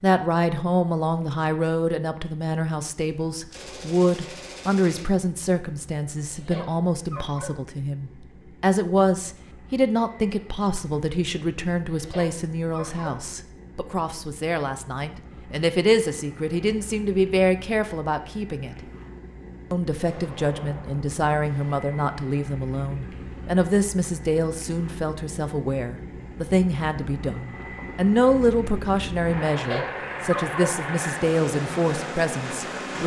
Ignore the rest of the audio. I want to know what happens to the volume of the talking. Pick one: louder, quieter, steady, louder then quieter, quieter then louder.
steady.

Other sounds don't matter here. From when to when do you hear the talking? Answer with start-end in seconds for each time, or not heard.
0.0-18.8, 19.7-33.0.